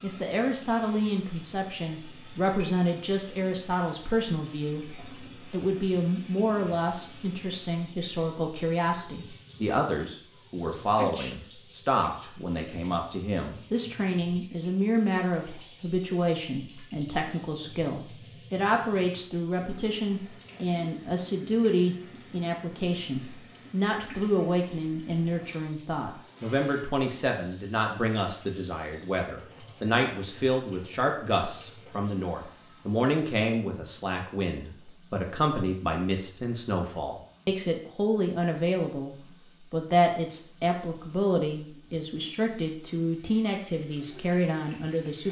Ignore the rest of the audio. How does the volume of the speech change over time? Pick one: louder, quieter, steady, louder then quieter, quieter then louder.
steady.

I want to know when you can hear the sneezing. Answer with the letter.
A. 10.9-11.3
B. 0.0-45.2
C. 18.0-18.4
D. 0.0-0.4
A.